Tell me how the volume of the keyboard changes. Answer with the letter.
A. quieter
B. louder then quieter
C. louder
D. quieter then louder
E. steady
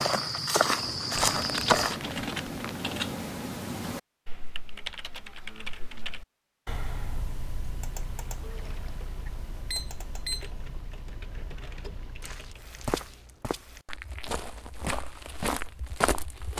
A.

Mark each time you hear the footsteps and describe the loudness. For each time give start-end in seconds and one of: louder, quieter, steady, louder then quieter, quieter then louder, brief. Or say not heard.
0.0-2.0 brief
11.8-16.5 quieter then louder.